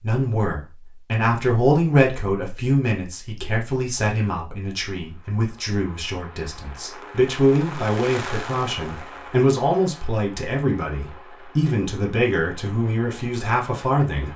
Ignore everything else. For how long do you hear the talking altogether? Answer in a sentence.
You can hear the talking for 14 seconds altogether.